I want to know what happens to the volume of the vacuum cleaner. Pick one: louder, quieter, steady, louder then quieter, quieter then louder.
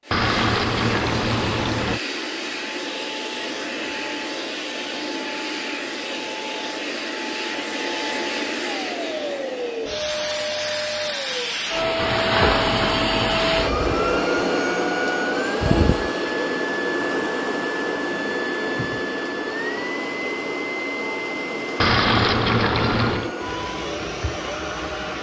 louder then quieter.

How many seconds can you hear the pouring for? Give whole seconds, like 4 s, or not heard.
5 s.